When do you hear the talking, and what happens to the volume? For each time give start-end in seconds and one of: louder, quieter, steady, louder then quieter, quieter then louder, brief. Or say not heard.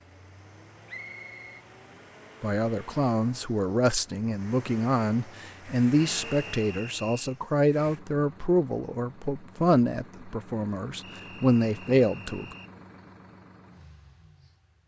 2.4-12.6 steady.